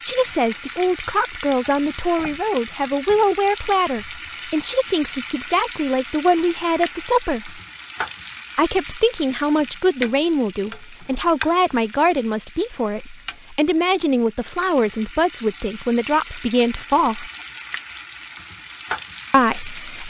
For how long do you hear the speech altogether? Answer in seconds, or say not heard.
17 s.